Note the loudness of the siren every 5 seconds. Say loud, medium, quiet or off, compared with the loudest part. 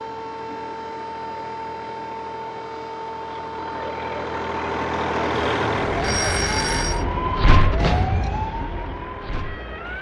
medium, loud.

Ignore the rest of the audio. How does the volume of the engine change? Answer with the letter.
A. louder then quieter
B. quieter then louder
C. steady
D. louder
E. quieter
A.